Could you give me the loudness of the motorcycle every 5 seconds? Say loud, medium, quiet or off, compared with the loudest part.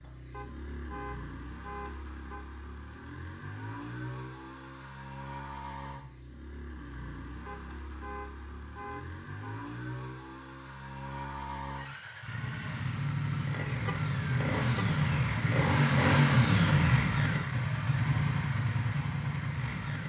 quiet, quiet, medium, loud.